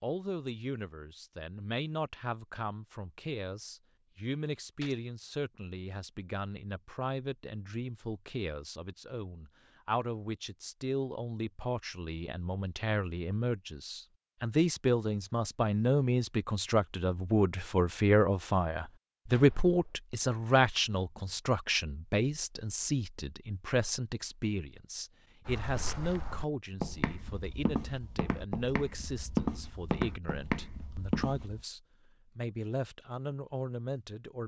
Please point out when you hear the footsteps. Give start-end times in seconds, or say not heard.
25.4-31.6.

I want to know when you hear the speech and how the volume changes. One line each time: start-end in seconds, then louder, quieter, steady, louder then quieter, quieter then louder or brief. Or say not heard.
0.0-34.4 louder then quieter.